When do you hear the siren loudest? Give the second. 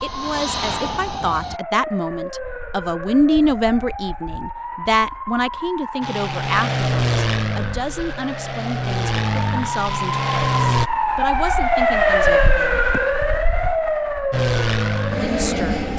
12 s.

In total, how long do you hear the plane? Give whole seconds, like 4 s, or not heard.
8 s.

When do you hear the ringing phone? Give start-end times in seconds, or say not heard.
not heard.